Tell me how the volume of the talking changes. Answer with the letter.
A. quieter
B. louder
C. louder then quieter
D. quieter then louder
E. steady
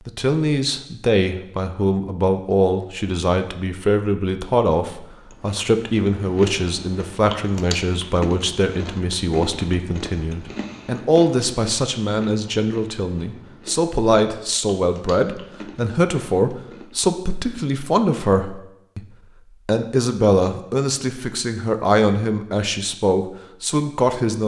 E.